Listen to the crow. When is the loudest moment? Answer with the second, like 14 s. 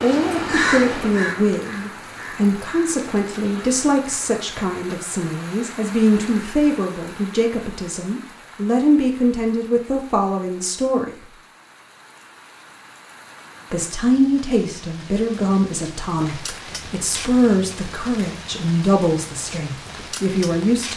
1 s.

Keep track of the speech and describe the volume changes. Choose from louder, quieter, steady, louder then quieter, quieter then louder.
steady.